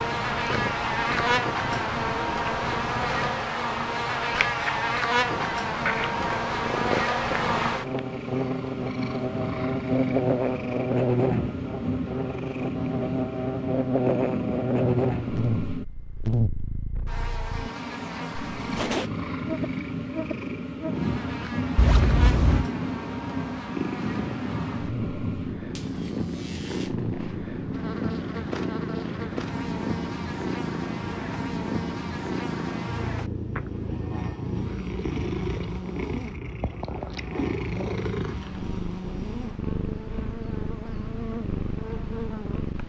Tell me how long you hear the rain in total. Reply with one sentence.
You can't hear the rain here.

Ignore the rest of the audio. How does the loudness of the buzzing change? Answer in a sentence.
The loudness of the buzzing goes down.